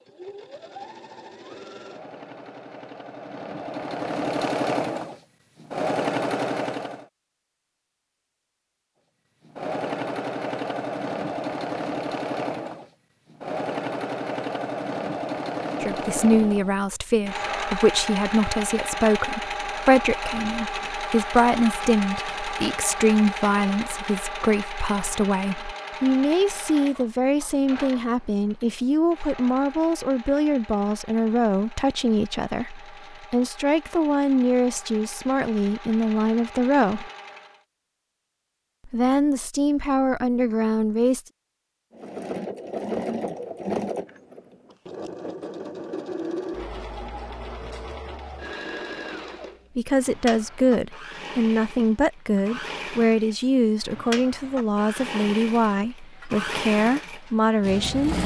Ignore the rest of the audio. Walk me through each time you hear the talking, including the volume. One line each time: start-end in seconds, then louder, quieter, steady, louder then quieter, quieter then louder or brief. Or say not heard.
15.8-37.1 steady
38.9-41.2 brief
49.8-58.2 steady.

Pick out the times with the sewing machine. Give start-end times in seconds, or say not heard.
0.0-7.0, 9.4-37.6, 41.9-58.2.